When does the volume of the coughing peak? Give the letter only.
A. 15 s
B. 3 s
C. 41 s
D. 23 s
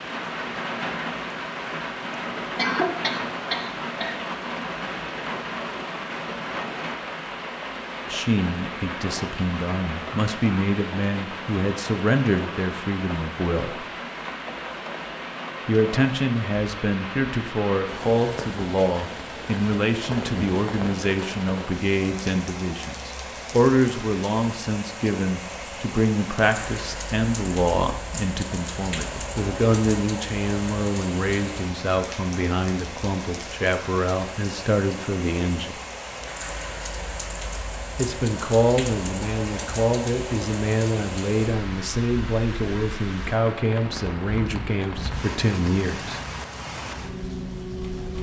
B.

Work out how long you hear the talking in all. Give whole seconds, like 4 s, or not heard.
34 s.